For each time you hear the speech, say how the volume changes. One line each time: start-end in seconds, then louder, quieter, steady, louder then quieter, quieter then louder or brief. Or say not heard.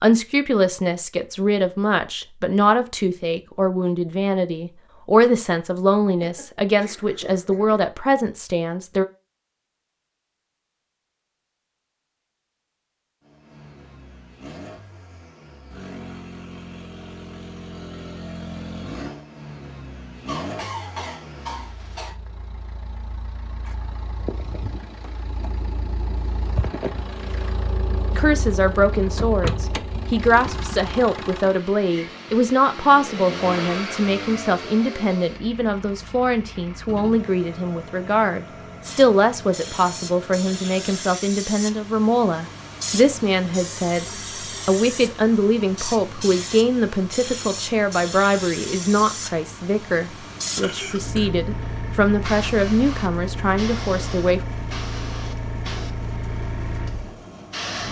0.0-9.1 steady
28.1-44.0 steady
44.6-54.4 steady.